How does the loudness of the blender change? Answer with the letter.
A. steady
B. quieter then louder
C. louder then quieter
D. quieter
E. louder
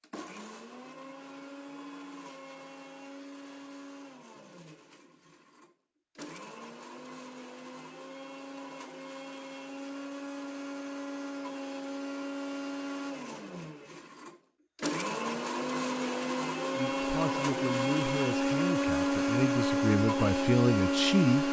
E.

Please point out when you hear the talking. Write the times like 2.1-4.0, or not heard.
16.8-21.4.